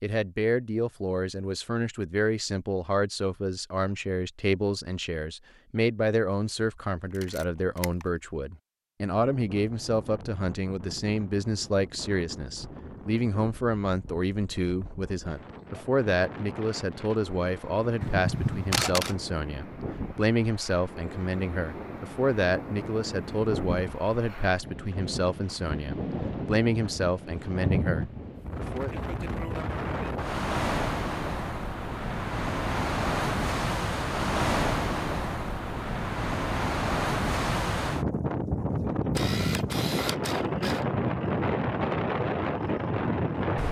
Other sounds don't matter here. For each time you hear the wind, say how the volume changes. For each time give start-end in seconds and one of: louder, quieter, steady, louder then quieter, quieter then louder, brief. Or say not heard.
9.2-43.6 louder.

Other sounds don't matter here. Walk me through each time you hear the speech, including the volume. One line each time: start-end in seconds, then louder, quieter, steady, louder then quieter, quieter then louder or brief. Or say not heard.
0.0-29.0 steady.